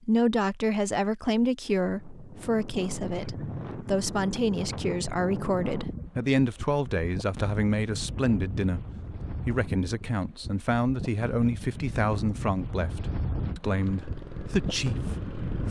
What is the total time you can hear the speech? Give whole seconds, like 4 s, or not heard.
15 s.